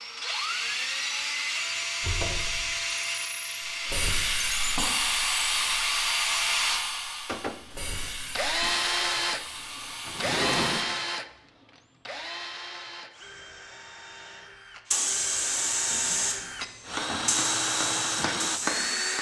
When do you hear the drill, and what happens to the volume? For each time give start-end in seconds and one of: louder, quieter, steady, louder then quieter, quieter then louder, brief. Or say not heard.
0.0-19.1 quieter then louder.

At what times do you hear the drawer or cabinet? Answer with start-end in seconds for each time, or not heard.
2.0-2.7, 10.1-10.8, 15.8-17.2.